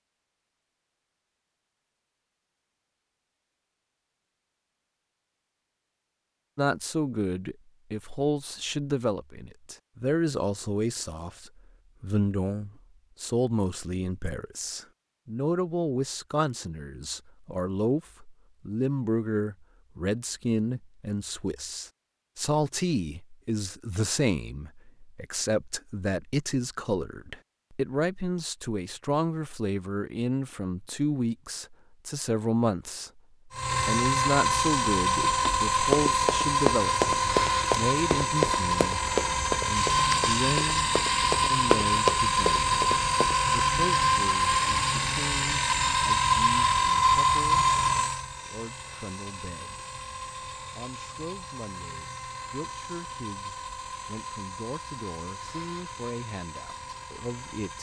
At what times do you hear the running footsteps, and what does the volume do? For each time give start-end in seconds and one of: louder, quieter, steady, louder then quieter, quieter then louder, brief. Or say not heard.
35.2-43.4 quieter then louder.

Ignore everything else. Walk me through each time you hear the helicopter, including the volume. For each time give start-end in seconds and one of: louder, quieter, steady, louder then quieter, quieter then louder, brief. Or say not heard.
33.5-57.7 quieter.